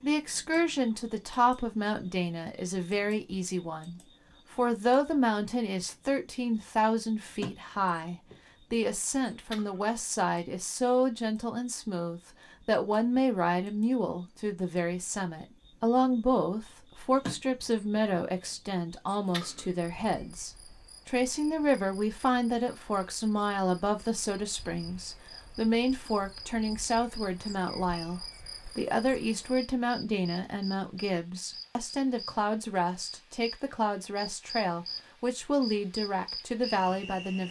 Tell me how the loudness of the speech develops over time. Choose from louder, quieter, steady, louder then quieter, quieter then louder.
steady.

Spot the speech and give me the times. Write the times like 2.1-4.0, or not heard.
0.0-37.4.